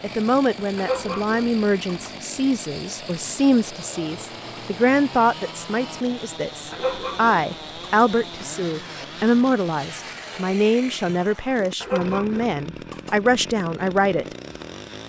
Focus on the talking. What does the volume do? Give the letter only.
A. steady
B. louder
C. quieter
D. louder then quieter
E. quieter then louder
A.